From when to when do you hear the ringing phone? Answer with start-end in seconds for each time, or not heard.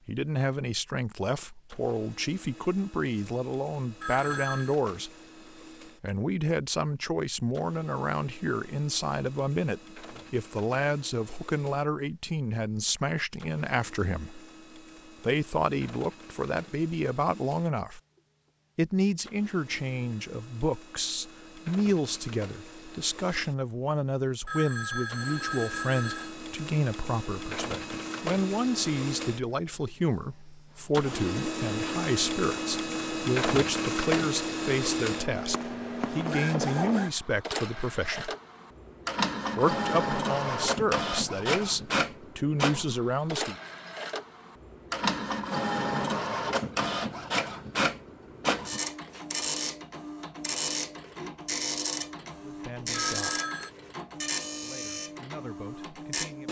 4.0-4.8, 24.4-26.4, 52.9-53.7.